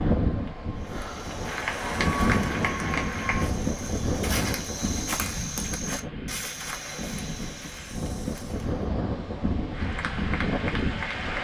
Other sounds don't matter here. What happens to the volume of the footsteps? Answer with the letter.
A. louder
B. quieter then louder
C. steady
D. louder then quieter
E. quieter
D.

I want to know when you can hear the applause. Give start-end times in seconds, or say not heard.
0.2-3.5, 9.7-11.4.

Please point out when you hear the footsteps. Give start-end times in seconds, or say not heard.
0.8-8.9.